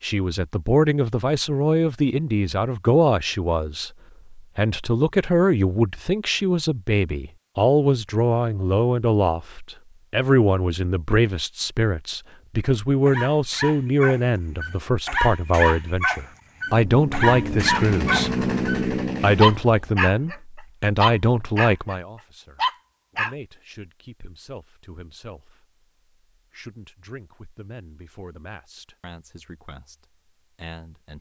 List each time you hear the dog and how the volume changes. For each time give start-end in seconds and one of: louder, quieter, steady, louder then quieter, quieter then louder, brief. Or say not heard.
13.1-20.4 louder
20.9-21.9 brief
22.6-23.4 brief.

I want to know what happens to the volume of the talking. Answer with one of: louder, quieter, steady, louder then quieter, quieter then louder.
quieter.